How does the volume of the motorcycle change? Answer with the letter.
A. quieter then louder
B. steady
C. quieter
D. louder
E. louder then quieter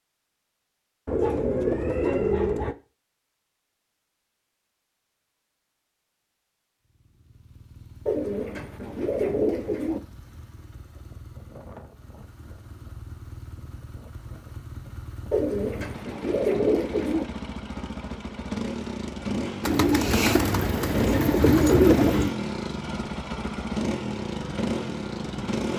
D.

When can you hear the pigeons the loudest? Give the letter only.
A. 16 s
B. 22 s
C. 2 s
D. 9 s
B.